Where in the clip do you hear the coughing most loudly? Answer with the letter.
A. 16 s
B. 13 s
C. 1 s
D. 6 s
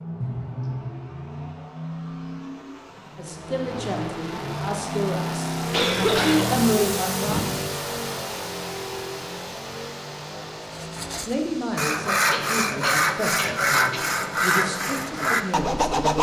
D.